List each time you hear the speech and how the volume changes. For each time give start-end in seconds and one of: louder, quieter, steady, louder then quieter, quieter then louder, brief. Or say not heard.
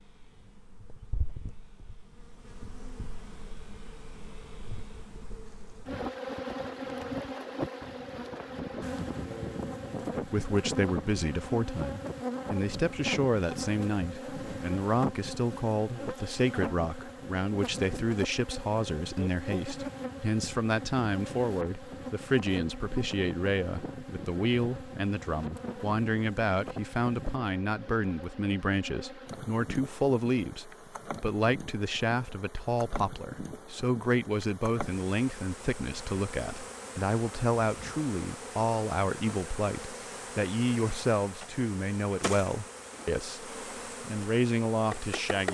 10.2-45.4 steady.